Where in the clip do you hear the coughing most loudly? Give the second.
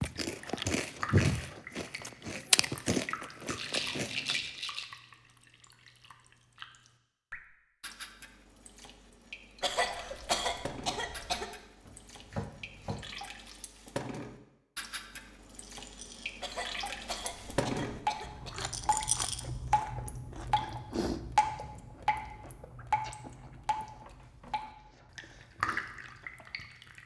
10 s.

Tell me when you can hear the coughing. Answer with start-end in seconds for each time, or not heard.
9.6-11.4, 16.4-18.9.